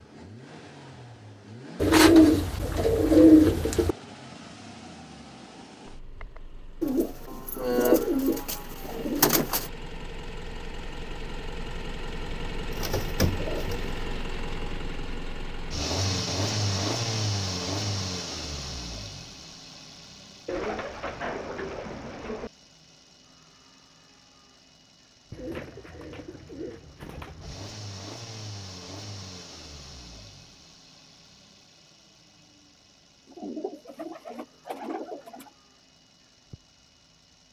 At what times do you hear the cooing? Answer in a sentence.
The cooing can be heard from 1.8 to 4.0 s, from 6.8 to 9.7 s, from 12.7 to 13.9 s, from 20.4 to 22.5 s, from 25.3 to 27.8 s and from 33.2 to 35.5 s.